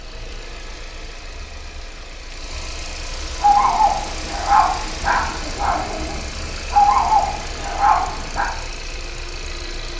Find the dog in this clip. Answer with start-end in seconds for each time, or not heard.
3.4-8.5.